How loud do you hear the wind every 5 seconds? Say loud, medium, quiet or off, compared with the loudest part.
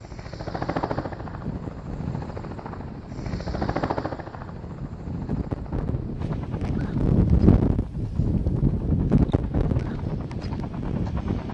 quiet, loud, medium.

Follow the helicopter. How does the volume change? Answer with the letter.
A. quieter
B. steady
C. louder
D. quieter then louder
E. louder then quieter
D.